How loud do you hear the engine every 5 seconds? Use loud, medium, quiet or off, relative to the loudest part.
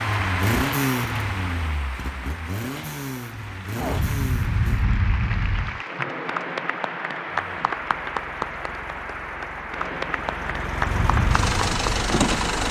loud, quiet, loud.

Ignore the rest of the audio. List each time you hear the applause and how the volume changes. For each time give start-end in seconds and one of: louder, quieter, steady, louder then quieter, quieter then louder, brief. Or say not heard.
0.0-12.6 quieter then louder.